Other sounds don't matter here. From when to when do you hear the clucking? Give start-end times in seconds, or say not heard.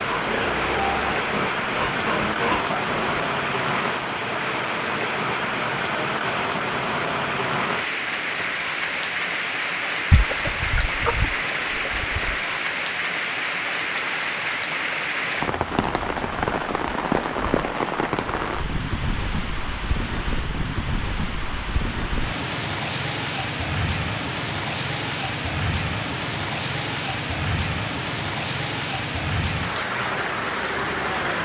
10.1-12.6.